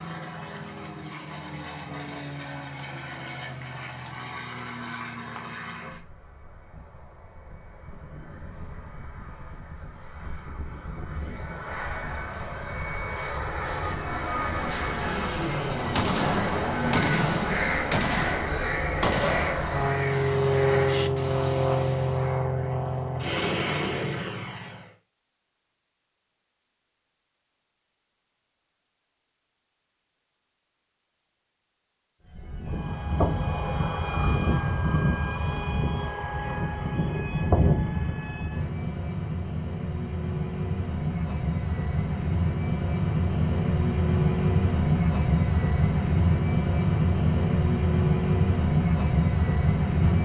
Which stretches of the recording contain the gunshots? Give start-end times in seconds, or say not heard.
15.9-19.6.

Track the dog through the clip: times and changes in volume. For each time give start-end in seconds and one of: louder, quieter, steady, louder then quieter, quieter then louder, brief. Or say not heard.
not heard.